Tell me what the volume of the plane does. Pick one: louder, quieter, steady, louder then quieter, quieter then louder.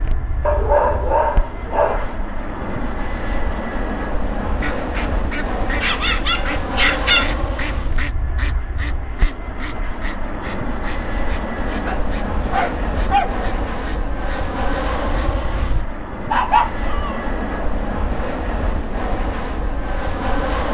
steady.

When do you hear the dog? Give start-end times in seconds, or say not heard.
0.4-2.1, 5.8-7.3, 11.6-13.3, 16.3-17.6.